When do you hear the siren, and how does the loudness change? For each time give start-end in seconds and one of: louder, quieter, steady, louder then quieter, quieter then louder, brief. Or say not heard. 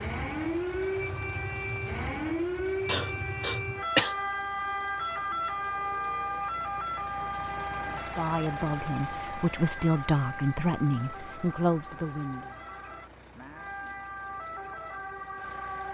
0.0-15.8 quieter.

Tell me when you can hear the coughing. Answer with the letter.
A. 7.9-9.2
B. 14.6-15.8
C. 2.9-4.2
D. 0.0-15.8
C.